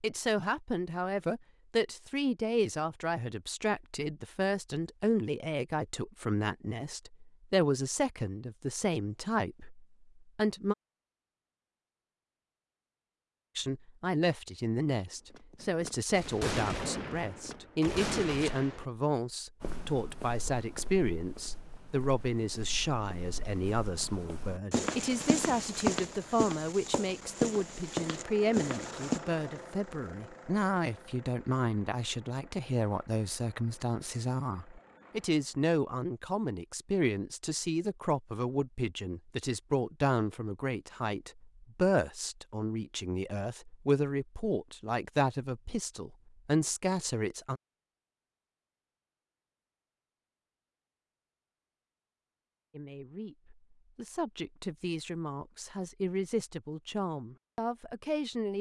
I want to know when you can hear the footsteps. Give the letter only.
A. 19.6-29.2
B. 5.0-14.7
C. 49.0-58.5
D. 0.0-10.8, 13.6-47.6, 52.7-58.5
A.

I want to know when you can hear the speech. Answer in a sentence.
The speech can be heard from 0.0 to 10.8 s, from 13.6 to 47.6 s and from 52.7 to 58.5 s.